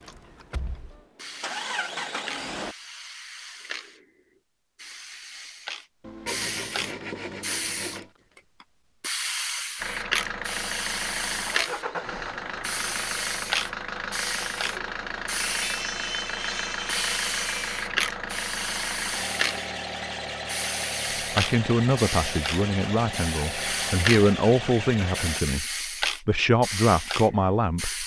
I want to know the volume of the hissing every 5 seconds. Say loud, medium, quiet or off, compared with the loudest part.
medium, loud, loud, loud, loud, loud.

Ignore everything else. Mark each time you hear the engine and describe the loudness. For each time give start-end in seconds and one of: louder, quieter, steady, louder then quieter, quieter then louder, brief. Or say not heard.
0.0-2.8 brief
9.8-25.4 steady.